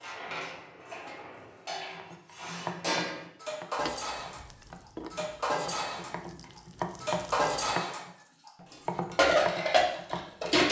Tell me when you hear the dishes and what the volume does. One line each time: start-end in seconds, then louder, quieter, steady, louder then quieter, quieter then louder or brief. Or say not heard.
0.0-10.6 louder.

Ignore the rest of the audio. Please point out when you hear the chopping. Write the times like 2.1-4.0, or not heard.
1.9-10.5.